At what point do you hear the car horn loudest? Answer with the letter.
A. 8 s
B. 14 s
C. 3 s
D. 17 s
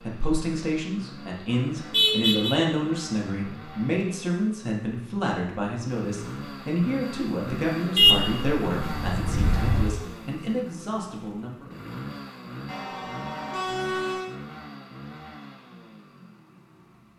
A.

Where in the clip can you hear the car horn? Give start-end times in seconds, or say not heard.
1.9-2.5, 8.0-9.8, 12.7-14.3.